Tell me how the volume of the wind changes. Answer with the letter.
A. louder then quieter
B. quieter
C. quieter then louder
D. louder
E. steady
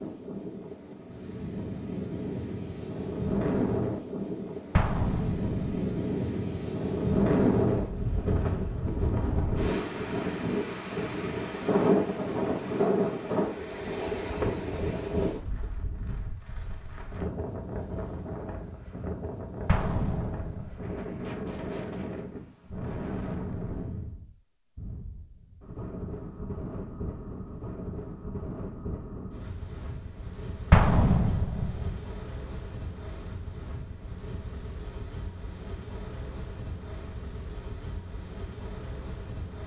B.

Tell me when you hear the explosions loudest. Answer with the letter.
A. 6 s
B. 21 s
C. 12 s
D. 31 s
D.